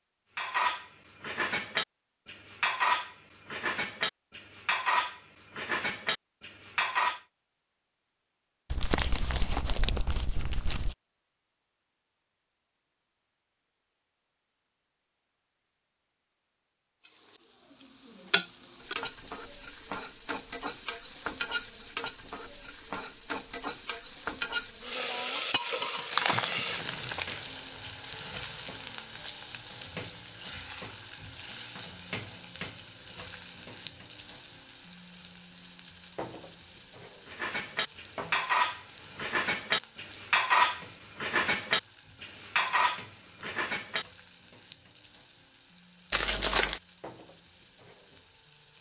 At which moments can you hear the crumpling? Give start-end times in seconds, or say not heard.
8.7-10.9, 26.1-27.2, 46.1-46.8.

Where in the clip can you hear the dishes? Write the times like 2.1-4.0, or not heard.
0.3-7.2, 37.2-44.0.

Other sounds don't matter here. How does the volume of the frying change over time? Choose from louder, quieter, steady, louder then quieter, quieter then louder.
quieter.